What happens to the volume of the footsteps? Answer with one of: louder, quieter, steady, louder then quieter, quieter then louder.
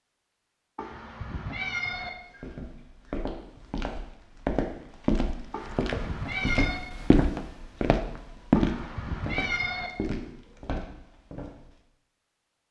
louder then quieter.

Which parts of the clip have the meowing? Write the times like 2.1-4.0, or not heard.
0.8-2.1, 5.5-6.8, 8.6-9.9.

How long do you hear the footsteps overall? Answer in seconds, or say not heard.
10 s.